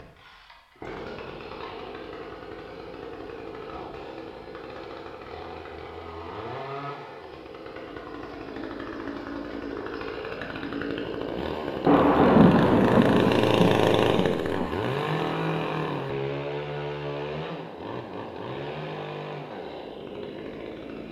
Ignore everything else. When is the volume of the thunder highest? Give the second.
12 s.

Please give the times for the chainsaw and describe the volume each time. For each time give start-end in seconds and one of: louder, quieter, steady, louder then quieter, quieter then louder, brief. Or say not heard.
0.0-21.0 louder then quieter.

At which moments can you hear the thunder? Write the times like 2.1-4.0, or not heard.
11.8-14.7.